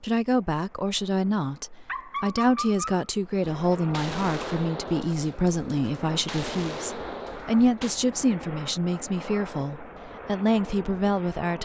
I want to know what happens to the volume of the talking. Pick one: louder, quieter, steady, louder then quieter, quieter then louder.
steady.